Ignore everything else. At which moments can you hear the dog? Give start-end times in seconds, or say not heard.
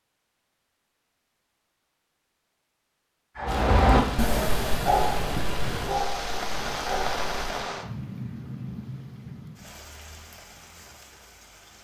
3.4-7.7.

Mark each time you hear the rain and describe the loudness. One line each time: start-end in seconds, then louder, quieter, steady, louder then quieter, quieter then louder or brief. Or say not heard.
3.5-11.7 quieter.